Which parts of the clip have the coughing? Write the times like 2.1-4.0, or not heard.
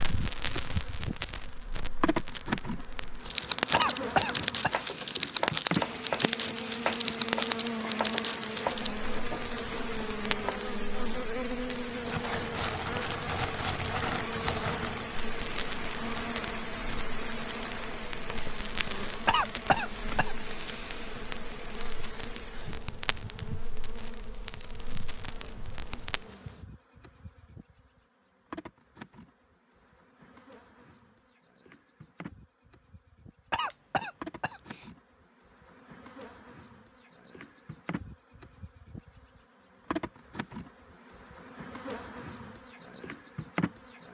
3.7-4.8, 19.2-21.2, 33.5-34.9.